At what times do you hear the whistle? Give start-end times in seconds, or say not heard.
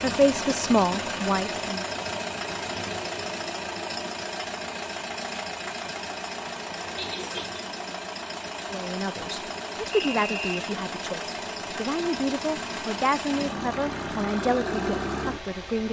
9.9-10.7.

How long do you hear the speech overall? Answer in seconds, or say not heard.
9 s.